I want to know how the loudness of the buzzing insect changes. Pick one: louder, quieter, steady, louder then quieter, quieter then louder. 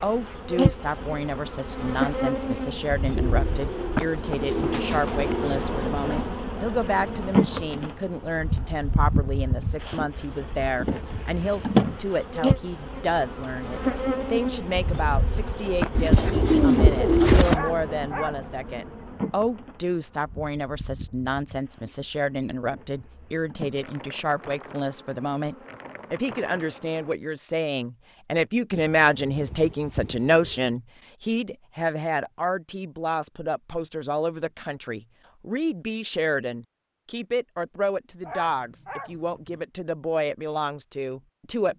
quieter.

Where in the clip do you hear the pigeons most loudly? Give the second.
17 s.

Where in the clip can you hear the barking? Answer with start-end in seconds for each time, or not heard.
17.4-18.9, 38.2-39.6.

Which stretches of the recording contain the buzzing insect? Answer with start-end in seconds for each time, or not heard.
0.0-27.1.